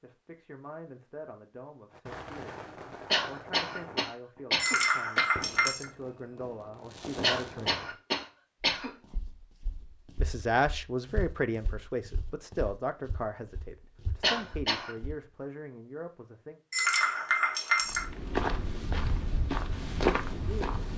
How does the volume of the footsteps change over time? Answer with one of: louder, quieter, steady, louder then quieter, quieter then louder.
louder.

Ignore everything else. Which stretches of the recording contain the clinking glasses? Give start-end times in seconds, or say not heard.
4.5-5.8, 16.7-18.1.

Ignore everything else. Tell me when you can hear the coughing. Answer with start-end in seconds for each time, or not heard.
3.1-5.2, 7.2-8.9, 14.2-14.9.